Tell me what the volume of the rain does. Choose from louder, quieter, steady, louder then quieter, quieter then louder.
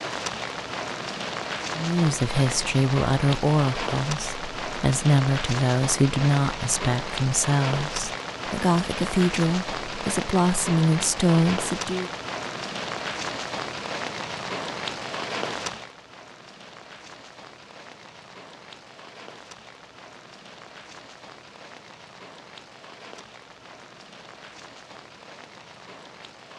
quieter.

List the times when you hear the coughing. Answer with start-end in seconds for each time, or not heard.
not heard.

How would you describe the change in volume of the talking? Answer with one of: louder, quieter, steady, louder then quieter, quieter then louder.
steady.